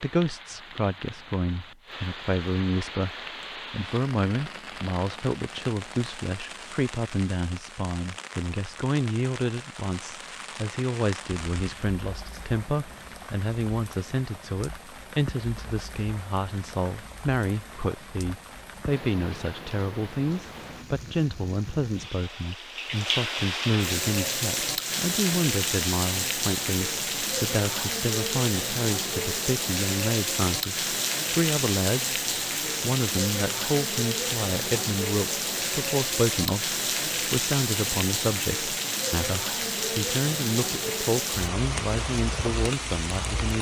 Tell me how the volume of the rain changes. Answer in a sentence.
The loudness of the rain goes up.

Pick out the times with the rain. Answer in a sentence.
The rain can be heard from 0.0 to 43.5 s.